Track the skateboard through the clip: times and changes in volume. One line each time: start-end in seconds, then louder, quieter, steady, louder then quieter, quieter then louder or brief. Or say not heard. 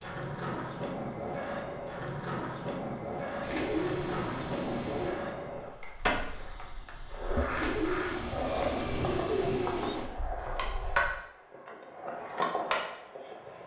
0.0-13.6 steady.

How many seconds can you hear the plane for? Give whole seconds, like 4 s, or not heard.
5 s.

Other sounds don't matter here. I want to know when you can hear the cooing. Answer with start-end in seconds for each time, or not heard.
3.4-5.2, 7.5-10.1.